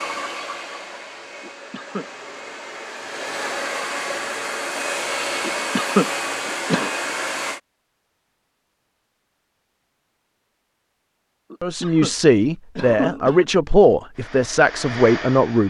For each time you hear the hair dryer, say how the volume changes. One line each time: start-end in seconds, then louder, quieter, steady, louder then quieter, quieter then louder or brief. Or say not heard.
0.0-7.6 louder
14.2-15.6 brief.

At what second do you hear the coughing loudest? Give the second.
6 s.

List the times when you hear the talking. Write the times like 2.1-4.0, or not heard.
11.6-15.6.